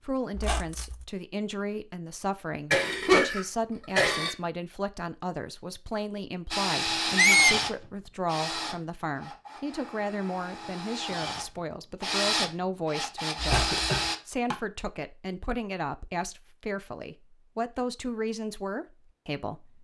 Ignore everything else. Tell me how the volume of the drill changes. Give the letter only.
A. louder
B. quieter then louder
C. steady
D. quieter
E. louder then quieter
B.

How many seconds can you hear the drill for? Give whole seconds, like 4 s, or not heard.
8 s.